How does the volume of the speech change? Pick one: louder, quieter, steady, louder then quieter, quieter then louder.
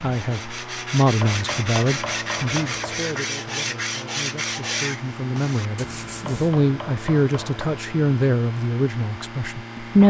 quieter then louder.